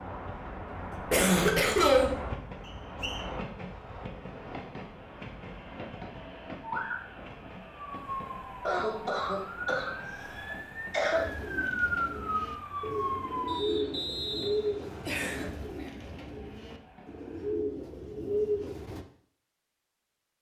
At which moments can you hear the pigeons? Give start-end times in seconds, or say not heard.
11.2-19.1.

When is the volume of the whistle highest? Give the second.
14 s.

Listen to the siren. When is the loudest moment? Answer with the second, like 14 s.
12 s.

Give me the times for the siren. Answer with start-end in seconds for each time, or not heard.
6.6-13.7.